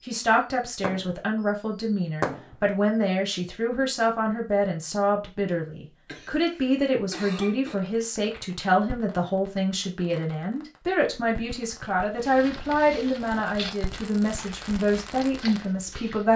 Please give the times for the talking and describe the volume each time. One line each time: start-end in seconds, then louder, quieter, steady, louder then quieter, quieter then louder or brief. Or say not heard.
0.1-16.3 steady.